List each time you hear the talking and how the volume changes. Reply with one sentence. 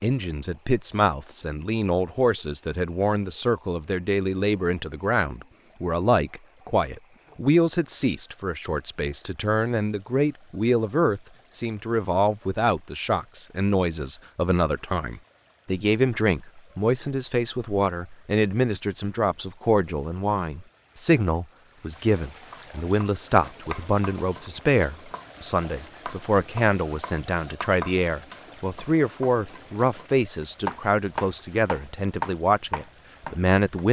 The talking can be heard from 0.0 to 33.8 s, at a steady volume.